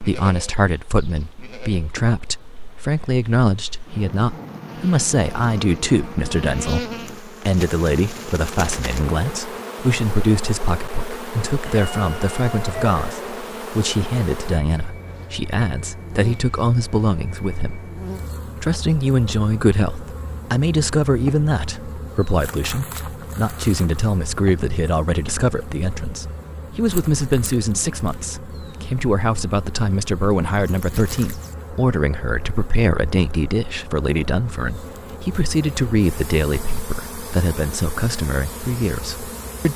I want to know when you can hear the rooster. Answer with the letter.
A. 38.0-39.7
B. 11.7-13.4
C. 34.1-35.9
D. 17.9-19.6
B.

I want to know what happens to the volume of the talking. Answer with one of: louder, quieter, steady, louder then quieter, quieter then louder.
steady.